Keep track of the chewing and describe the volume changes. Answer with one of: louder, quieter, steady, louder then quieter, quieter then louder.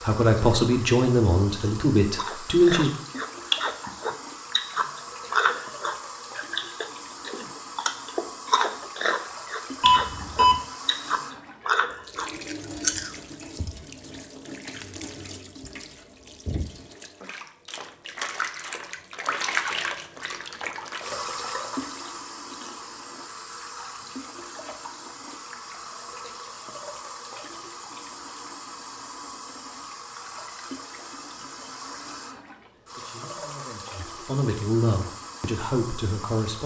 steady.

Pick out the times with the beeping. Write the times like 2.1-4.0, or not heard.
9.8-10.6.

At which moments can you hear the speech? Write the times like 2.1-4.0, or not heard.
0.0-2.9, 32.8-36.6.